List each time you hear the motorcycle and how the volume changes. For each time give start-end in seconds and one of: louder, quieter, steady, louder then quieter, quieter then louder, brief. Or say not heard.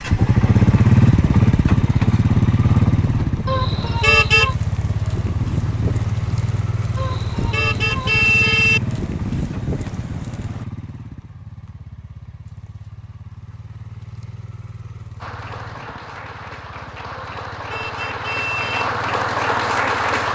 0.0-20.3 quieter.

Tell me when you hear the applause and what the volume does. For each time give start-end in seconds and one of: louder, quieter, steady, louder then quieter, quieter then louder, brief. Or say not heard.
15.2-20.3 louder.